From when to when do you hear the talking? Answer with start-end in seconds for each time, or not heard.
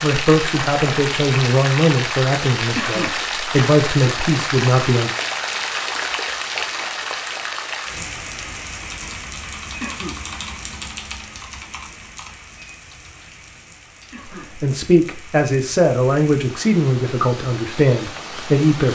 0.0-5.2, 14.6-18.9.